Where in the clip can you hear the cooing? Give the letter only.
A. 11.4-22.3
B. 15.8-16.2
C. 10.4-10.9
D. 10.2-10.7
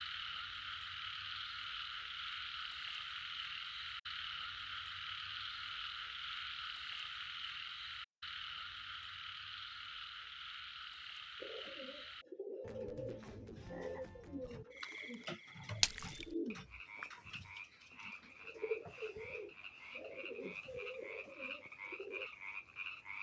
A.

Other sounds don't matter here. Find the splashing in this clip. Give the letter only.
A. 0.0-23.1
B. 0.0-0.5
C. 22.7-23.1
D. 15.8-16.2
D.